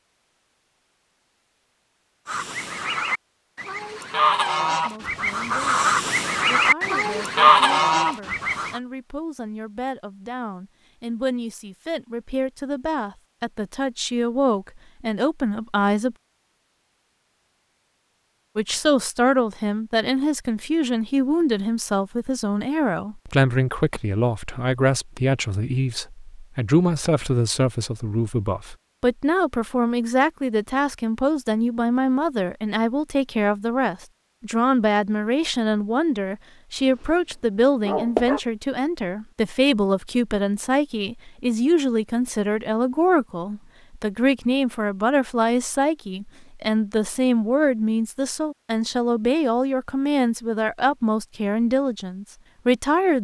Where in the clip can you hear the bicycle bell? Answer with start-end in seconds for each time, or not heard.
not heard.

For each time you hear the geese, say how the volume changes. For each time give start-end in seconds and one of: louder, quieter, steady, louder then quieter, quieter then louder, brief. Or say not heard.
2.2-8.8 louder.